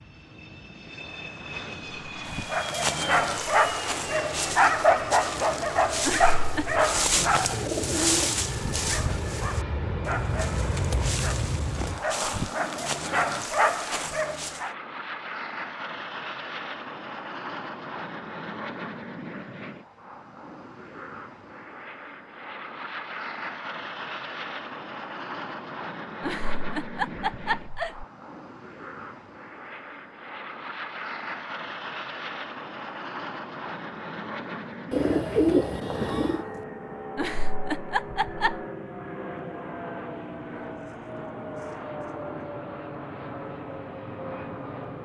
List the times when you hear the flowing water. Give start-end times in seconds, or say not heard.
not heard.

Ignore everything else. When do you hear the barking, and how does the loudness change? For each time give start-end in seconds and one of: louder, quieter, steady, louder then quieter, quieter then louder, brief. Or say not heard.
2.3-14.8 quieter then louder.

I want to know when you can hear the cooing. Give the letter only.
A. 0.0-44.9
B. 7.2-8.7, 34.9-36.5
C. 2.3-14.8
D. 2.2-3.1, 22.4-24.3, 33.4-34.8
B.